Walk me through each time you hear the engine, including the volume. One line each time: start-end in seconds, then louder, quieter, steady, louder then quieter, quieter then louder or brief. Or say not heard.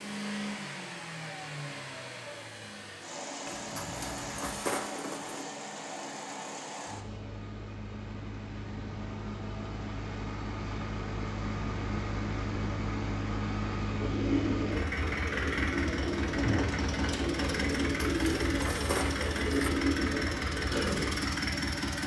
0.0-22.0 louder.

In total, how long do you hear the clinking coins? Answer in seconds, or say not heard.
4 s.